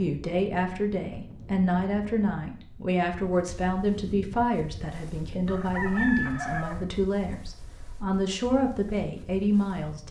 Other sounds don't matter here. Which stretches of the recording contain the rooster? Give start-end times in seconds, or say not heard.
5.5-6.8.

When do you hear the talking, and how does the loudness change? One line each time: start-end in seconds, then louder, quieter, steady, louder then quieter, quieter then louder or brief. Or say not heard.
0.0-10.0 steady.